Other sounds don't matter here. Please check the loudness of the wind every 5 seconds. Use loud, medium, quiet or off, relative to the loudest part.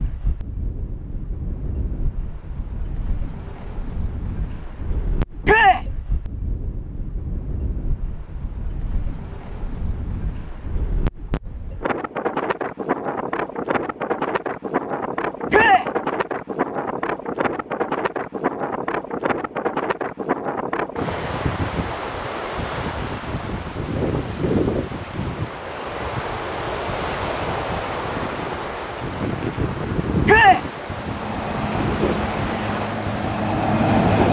medium, medium, loud, loud, loud, loud, loud.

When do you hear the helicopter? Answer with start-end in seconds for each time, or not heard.
30.9-34.2.